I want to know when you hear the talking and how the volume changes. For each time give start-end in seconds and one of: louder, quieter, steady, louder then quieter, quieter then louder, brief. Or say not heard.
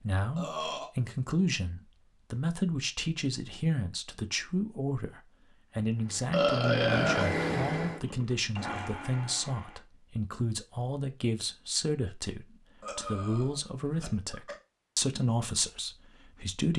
0.0-16.7 steady.